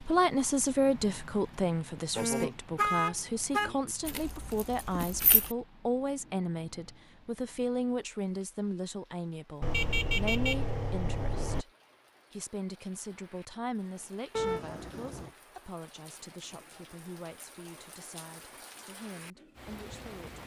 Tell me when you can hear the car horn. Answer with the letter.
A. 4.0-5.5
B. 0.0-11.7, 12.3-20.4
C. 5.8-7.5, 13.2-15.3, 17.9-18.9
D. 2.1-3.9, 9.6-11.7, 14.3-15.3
D.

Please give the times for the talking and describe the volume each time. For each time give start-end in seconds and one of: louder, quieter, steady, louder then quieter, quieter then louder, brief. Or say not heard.
0.0-11.7 quieter
12.3-20.4 quieter.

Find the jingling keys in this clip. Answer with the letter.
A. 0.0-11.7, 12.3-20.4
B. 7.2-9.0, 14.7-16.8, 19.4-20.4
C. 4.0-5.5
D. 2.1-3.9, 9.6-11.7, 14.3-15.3
C.